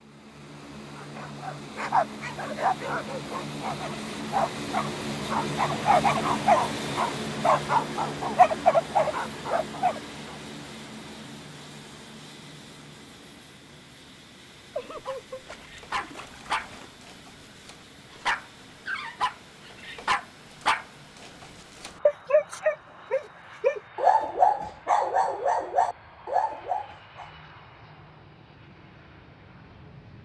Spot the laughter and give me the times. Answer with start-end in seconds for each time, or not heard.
14.8-15.4.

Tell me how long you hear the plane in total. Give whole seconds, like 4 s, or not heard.
30 s.